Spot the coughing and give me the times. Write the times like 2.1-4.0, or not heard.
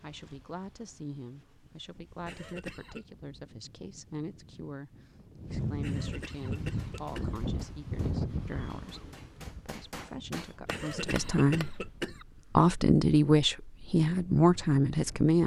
2.2-3.0, 5.8-7.4, 10.7-12.2.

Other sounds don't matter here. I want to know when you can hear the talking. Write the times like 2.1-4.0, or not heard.
0.0-11.8, 12.6-15.4.